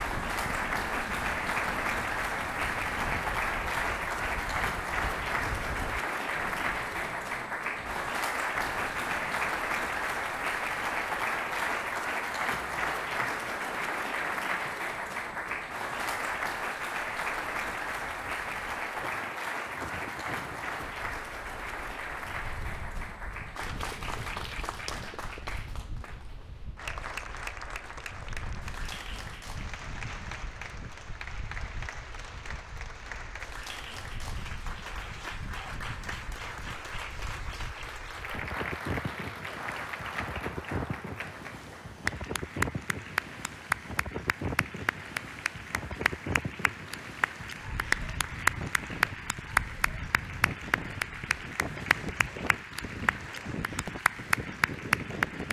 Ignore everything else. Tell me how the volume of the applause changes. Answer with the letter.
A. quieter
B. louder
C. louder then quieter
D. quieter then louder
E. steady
D.